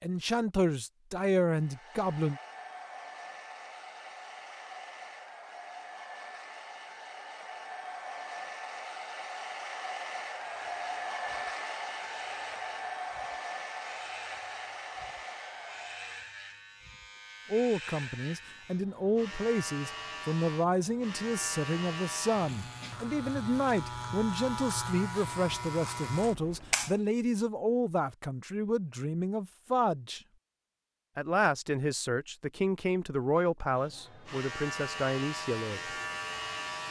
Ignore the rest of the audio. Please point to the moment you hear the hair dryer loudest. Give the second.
11 s.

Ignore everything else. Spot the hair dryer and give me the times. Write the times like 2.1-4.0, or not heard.
1.5-16.2.